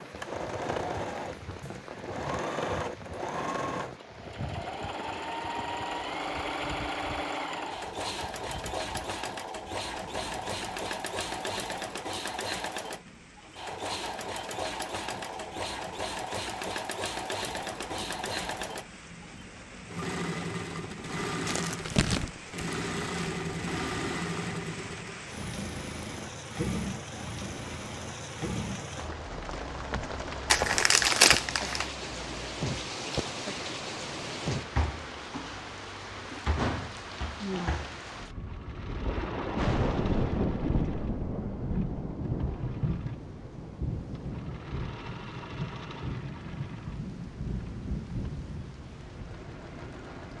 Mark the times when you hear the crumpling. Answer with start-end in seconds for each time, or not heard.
21.4-23.3, 30.5-31.9.